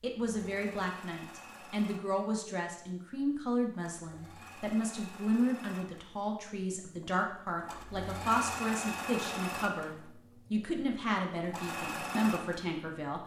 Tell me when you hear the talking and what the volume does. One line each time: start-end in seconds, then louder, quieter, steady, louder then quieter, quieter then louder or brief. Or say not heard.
0.0-13.2 steady.